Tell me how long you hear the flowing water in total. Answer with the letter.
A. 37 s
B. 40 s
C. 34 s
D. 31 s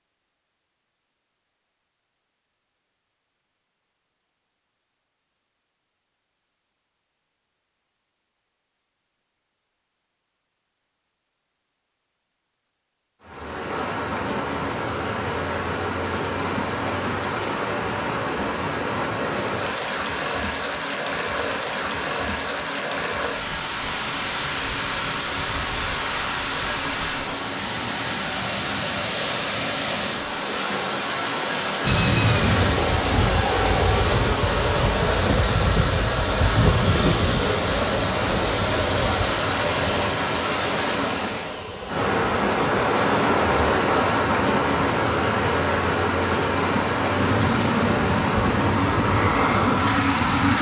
A.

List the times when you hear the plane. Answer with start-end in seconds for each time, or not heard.
31.9-44.2, 47.1-50.5.